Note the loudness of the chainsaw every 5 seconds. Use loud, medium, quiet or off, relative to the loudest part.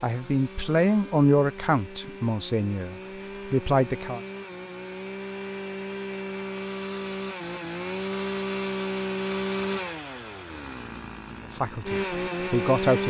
medium, loud, loud.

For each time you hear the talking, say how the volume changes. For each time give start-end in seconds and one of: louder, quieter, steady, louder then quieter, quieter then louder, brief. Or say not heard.
0.0-4.2 quieter then louder
11.5-13.0 brief.